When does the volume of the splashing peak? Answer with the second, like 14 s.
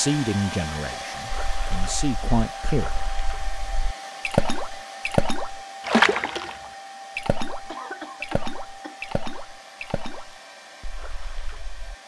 6 s.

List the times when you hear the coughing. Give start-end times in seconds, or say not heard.
7.7-8.9.